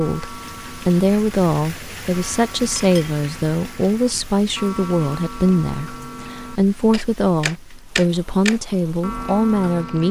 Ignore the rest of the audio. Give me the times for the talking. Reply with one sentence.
The talking can be heard from 0.0 to 10.0 s.